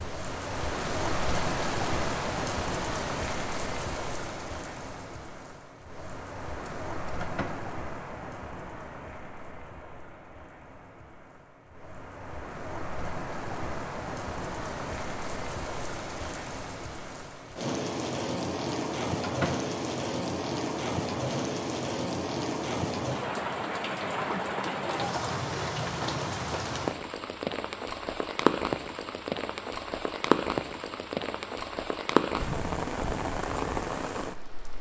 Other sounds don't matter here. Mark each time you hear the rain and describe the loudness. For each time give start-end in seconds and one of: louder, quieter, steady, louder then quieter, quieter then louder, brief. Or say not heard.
0.0-34.7 quieter then louder.